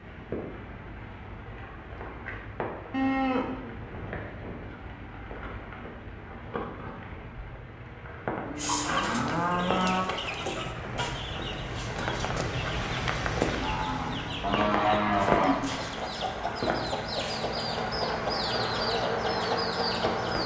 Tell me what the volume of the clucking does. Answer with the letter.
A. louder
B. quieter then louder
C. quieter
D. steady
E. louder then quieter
B.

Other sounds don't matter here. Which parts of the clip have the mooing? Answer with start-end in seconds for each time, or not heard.
2.9-4.6, 8.4-10.2, 13.6-15.6.